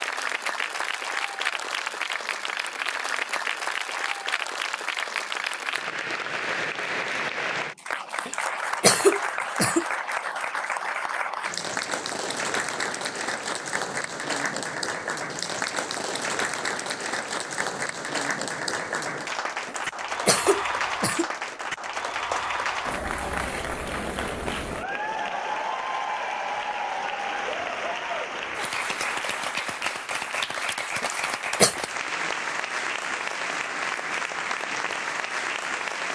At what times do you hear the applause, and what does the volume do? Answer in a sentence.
The applause can be heard from 0.0 to 36.0 s, at a steady volume.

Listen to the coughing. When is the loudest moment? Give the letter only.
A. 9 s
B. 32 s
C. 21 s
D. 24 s
A.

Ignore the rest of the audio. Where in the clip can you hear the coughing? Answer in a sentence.
The coughing can be heard from 8.2 to 9.8 s, from 19.6 to 21.2 s and from 31.0 to 31.8 s.